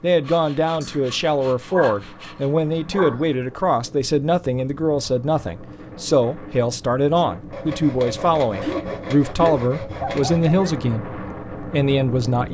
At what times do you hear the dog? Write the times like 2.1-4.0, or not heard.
0.8-3.3, 8.6-10.8.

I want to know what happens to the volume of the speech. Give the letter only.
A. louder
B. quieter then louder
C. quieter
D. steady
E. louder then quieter
D.